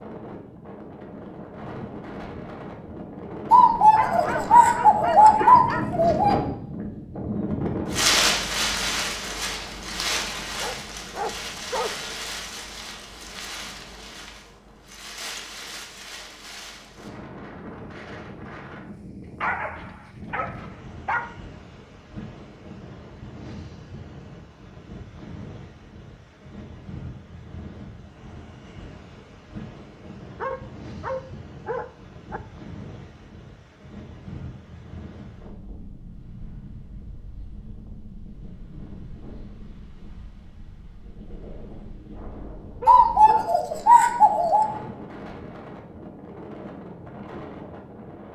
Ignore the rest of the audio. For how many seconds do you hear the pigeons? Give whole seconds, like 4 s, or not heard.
5 s.